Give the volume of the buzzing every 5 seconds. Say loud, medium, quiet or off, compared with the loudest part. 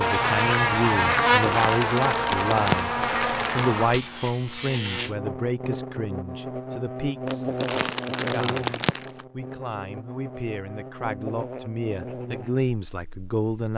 loud, medium, quiet.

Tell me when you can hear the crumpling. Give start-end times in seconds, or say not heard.
1.4-3.7, 7.2-9.2.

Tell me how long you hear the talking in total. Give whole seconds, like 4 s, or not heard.
14 s.